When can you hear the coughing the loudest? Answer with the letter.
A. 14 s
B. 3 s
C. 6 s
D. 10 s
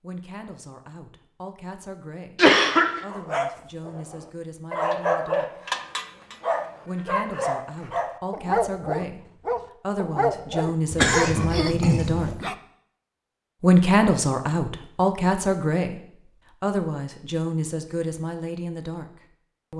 B.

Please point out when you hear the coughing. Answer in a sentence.
The coughing can be heard from 2.4 to 3.0 s and from 10.9 to 12.3 s.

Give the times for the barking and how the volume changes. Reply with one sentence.
The barking can be heard from 3.1 to 12.6 s, at a steady volume.